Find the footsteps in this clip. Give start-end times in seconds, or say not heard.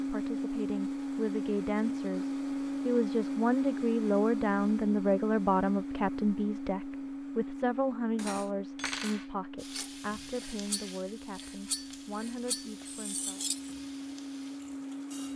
not heard.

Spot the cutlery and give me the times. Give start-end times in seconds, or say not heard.
8.2-13.7.